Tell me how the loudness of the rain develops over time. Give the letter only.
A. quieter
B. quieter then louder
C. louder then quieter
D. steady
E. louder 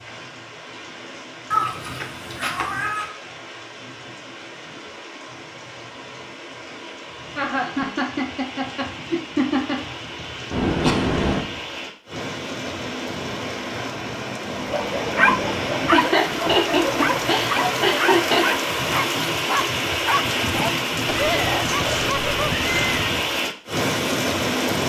E.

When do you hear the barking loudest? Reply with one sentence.
The loudest moment of the barking is at 15 seconds.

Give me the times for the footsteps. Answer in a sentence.
You can't hear the footsteps here.